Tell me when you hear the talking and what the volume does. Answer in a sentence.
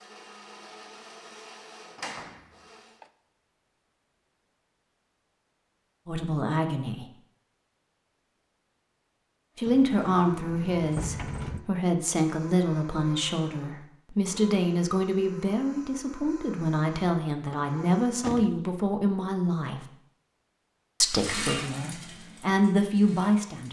You can hear the talking briefly from 6.0 to 7.0 s; from 9.6 to 19.9 s, at a steady volume; and briefly from 21.0 to 23.6 s.